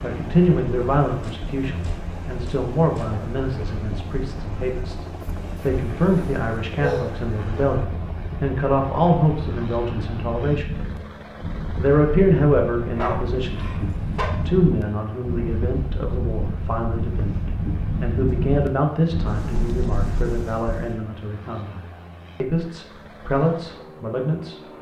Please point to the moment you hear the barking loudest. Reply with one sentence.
The volume of the barking peaks at 7 seconds.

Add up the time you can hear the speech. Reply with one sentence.
You can hear the speech for 23 seconds altogether.